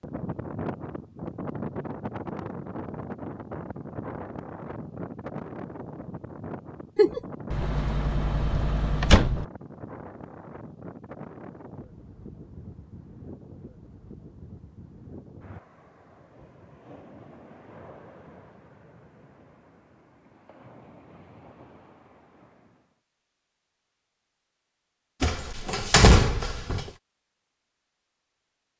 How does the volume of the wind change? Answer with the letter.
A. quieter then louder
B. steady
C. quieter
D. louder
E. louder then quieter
C.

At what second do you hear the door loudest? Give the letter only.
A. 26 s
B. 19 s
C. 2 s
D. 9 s
A.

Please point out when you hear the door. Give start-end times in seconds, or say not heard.
7.5-9.4, 25.2-26.9.